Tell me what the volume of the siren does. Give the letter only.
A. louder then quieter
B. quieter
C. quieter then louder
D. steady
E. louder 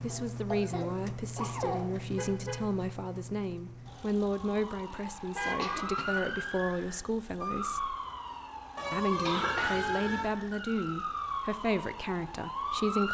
D.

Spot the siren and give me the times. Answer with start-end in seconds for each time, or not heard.
4.4-13.0.